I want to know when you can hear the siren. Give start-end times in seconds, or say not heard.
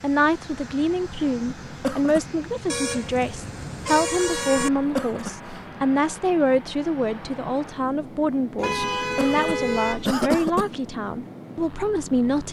not heard.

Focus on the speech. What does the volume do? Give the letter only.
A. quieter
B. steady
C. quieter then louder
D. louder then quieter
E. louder
B.